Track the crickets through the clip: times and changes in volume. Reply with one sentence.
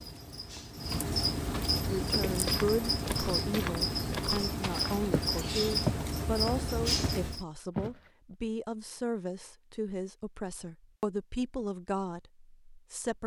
The crickets can be heard from 0.0 to 7.5 s, at a steady volume.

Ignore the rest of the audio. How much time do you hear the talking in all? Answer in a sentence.
The talking can be heard for 11 seconds in total.